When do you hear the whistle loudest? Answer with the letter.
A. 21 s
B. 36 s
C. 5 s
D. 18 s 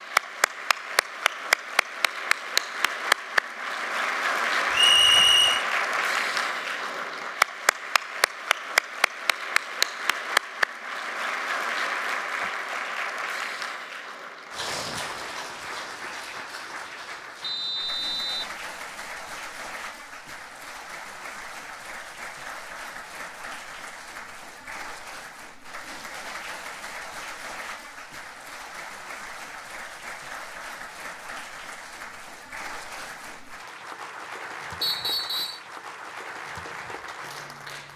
C.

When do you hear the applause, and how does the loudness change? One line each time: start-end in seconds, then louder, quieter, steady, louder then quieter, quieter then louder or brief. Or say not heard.
0.0-37.9 quieter.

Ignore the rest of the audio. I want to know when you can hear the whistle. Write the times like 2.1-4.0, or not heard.
4.7-5.7, 17.4-18.6, 34.8-35.6.